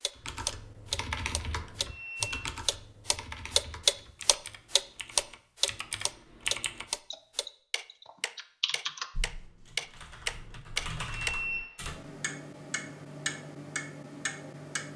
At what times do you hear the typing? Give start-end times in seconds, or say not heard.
0.1-12.1.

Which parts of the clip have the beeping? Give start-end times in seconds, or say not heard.
1.8-2.5, 11.2-11.7.